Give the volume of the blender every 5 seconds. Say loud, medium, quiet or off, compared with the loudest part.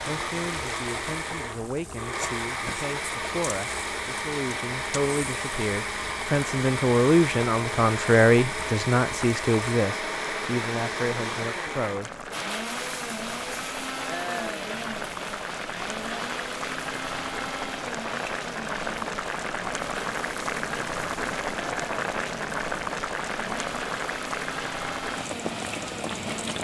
loud, loud, loud, medium, medium, medium.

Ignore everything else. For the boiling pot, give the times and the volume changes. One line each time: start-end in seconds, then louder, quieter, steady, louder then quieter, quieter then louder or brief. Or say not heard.
0.0-26.5 louder.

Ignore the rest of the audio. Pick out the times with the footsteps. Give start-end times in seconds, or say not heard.
not heard.